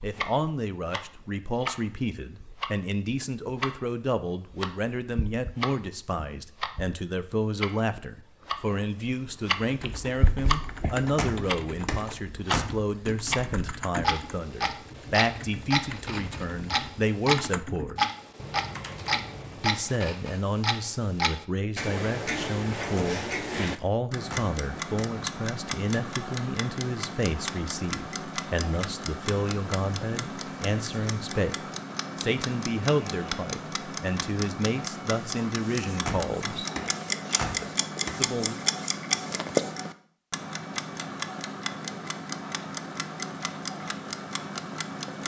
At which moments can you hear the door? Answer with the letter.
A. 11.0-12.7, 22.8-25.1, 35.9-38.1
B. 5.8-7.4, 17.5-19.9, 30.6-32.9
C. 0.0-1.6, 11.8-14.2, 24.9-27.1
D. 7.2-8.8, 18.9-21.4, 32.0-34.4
A.